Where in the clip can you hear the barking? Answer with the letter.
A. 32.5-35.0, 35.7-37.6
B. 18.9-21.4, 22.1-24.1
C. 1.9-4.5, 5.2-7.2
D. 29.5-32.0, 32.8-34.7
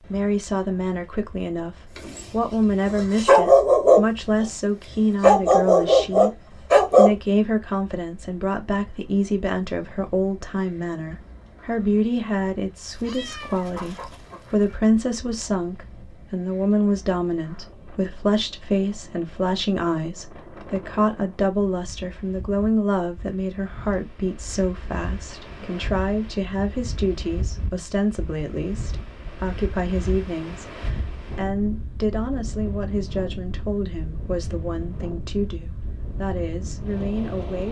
C.